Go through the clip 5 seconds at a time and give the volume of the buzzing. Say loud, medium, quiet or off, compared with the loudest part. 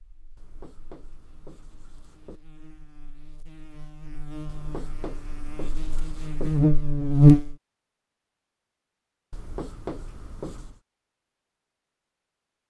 quiet, loud, off.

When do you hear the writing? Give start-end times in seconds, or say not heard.
0.3-2.4, 4.5-6.5, 9.3-10.8.